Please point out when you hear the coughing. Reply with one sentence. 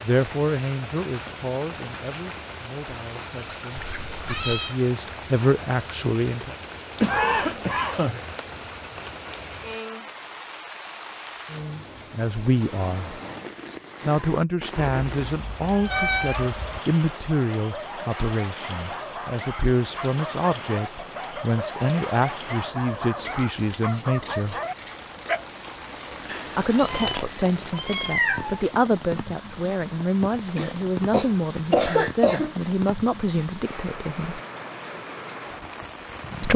The coughing can be heard from 7.0 to 8.2 s and from 30.3 to 32.5 s.